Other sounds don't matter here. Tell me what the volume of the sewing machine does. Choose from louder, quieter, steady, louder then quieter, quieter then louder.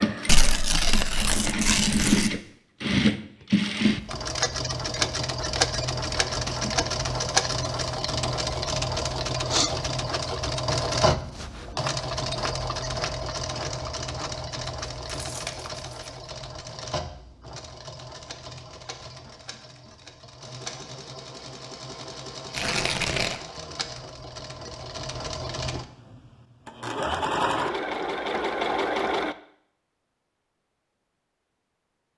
quieter then louder.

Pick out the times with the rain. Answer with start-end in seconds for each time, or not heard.
not heard.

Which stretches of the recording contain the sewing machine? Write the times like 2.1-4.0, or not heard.
0.0-29.4.